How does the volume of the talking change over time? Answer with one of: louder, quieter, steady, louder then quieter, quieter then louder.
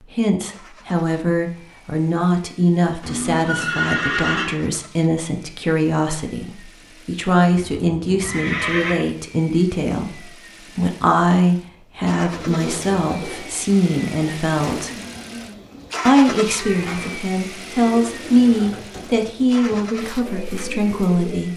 steady.